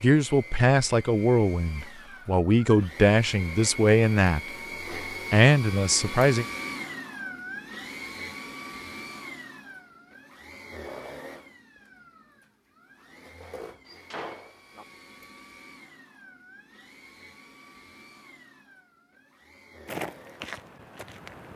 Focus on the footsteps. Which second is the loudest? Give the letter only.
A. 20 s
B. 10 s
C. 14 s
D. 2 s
A.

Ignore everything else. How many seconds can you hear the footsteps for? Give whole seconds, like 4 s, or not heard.
2 s.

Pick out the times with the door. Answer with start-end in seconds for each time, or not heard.
13.8-14.8.